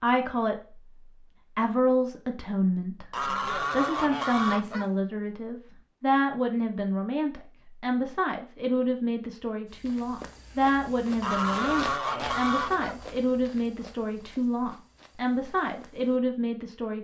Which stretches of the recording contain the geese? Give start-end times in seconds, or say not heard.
3.1-4.9, 11.2-12.9.